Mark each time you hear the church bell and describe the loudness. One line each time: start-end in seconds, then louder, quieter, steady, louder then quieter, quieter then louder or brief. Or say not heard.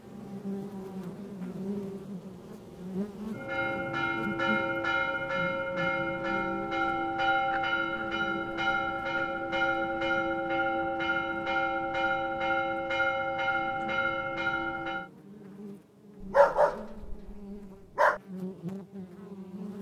3.4-15.1 steady.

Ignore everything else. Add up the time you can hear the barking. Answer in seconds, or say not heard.
2 s.